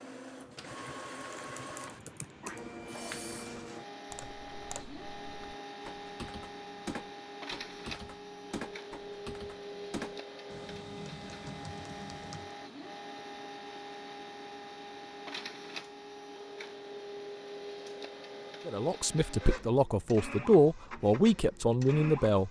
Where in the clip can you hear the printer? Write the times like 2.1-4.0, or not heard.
0.0-22.4.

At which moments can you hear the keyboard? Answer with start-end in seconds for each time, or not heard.
0.4-12.6.